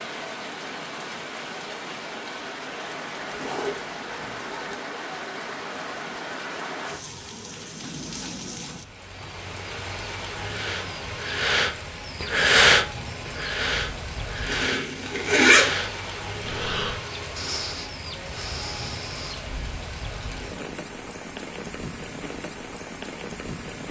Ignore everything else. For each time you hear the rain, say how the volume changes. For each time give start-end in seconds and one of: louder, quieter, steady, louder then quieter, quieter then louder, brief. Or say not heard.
0.0-23.8 steady.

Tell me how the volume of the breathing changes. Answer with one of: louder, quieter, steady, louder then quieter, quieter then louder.
louder then quieter.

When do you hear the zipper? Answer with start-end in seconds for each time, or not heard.
3.3-4.6, 14.4-15.7.